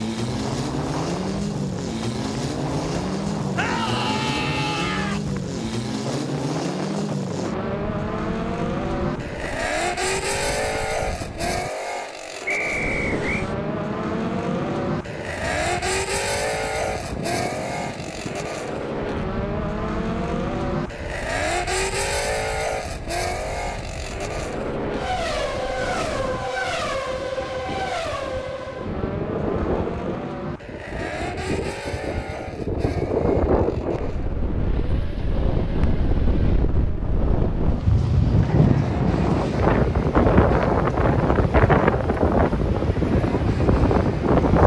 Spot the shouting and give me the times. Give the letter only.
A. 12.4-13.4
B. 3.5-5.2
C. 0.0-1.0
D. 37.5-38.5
B.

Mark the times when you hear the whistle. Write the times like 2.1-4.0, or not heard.
12.4-13.4.